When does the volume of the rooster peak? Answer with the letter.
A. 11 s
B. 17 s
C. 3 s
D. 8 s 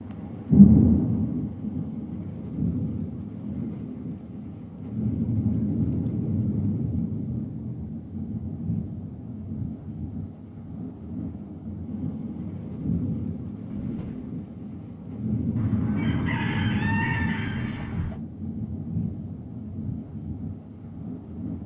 B.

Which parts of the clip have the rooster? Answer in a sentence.
The rooster can be heard from 15.6 to 18.1 s.